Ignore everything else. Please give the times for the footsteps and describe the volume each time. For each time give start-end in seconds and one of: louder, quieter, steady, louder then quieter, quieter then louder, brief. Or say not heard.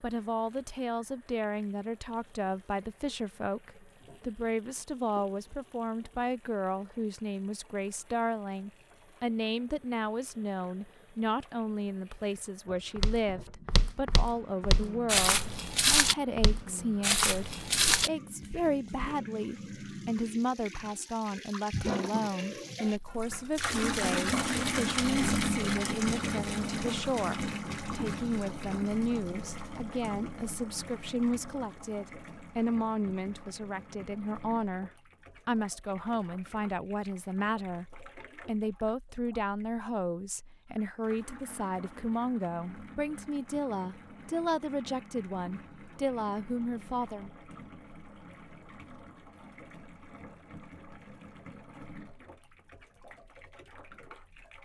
12.9-19.1 louder.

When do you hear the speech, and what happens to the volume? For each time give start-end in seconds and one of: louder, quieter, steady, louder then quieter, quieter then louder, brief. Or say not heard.
0.0-47.3 steady.